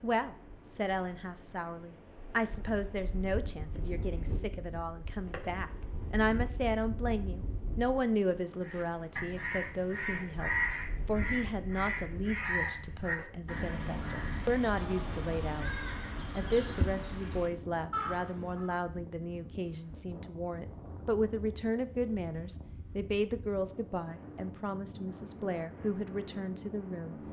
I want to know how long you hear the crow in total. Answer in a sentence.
The crow can be heard for 10 seconds in total.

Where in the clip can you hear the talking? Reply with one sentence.
The talking can be heard from 0.0 to 27.1 s.